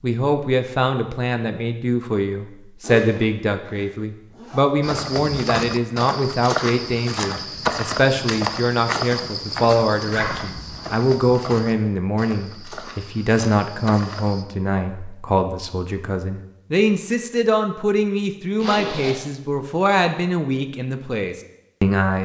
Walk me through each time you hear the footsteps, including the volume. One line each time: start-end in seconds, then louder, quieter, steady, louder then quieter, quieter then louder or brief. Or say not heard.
4.8-14.4 quieter.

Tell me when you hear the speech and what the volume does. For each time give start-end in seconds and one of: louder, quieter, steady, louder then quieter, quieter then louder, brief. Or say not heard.
0.0-22.1 steady.